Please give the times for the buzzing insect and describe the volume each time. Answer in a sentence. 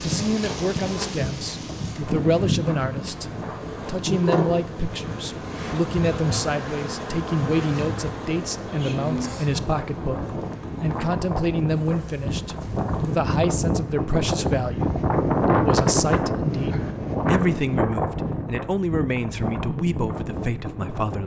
You can hear the buzzing insect from 0.0 to 13.2 s, getting quieter.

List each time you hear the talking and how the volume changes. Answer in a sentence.
The talking can be heard from 0.0 to 21.2 s, at a steady volume.